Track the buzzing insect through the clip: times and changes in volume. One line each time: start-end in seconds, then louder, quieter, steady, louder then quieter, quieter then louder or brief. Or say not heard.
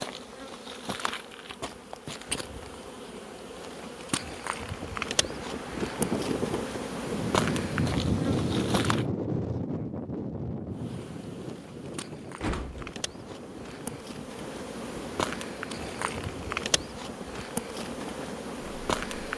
0.0-9.1 louder
10.7-19.3 louder.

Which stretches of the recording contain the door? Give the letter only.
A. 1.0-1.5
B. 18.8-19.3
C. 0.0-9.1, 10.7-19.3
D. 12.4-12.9
D.